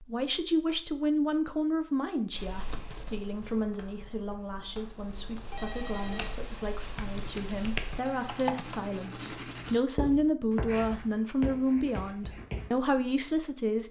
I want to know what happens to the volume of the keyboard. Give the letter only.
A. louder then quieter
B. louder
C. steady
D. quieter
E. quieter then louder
E.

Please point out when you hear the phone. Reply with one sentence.
The phone can be heard from 5.0 to 6.4 s.